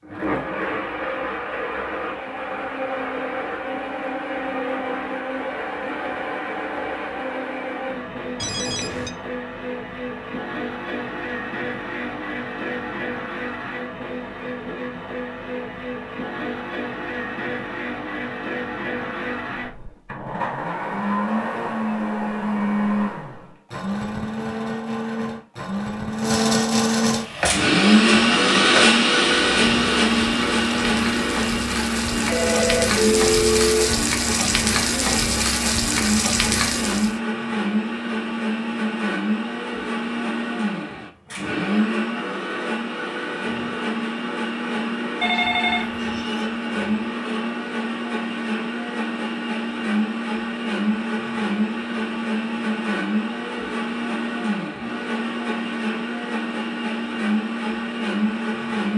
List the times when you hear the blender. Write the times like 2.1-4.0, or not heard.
0.0-58.9.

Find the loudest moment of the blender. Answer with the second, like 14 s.
28 s.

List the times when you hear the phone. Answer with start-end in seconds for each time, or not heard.
8.4-9.1, 32.2-34.0, 45.2-46.5.